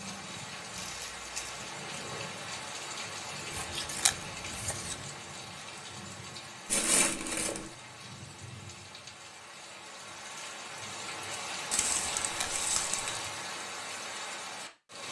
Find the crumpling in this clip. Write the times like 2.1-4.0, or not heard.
0.8-1.6, 6.7-7.7, 11.7-13.2.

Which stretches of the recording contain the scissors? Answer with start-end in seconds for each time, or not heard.
3.5-5.0, 12.1-12.6.